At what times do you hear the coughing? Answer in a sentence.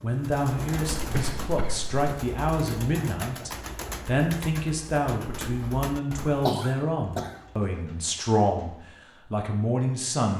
You can hear the coughing from 0.9 to 2.0 s and from 6.5 to 7.4 s.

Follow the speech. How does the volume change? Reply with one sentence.
The loudness of the speech stays about the same.